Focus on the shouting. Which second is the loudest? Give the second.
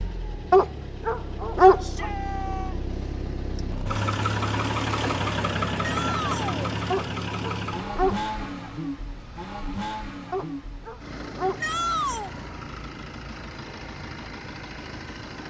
12 s.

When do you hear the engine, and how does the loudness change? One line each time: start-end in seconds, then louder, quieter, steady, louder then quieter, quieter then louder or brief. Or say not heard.
0.0-15.4 louder then quieter.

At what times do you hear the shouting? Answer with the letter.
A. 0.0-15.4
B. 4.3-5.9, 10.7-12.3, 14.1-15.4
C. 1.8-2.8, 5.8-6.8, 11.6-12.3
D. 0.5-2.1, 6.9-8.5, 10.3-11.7
C.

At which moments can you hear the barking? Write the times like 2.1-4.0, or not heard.
0.5-2.1, 6.9-8.5, 10.3-11.7.